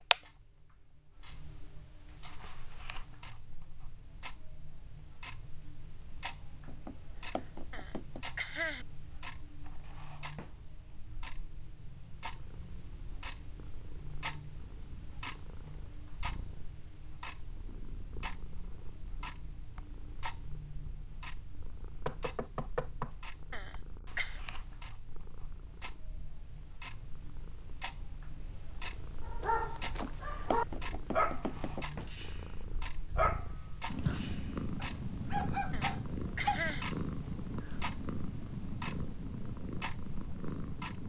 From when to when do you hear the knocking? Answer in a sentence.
The knocking can be heard from 6.7 to 8.2 s, from 22.1 to 23.1 s and from 29.8 to 31.9 s.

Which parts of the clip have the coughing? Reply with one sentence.
The coughing can be heard from 7.7 to 8.8 s, from 23.5 to 24.4 s and from 35.7 to 36.9 s.